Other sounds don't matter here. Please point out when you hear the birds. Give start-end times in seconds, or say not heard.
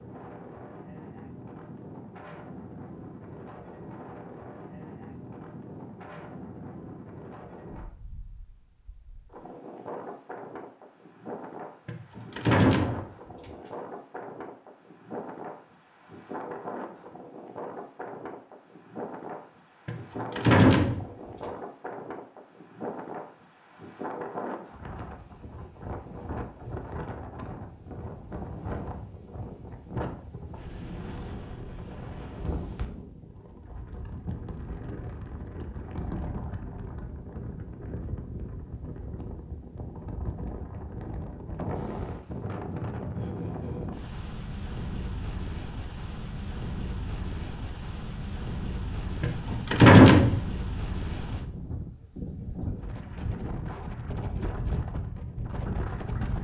not heard.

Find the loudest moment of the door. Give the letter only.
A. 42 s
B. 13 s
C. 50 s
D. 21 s
C.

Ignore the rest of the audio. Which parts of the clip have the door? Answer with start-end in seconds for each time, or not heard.
11.8-13.5, 19.9-21.1, 49.2-50.4.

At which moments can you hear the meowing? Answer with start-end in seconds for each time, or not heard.
not heard.